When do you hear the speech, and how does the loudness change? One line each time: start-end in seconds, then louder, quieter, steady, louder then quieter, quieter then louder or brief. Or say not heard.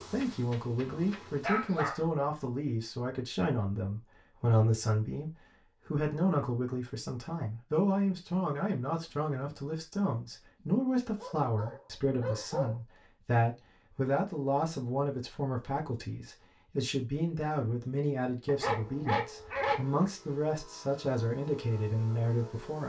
0.1-22.8 steady.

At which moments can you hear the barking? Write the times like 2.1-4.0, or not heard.
0.2-2.1, 11.2-12.8, 18.4-19.9.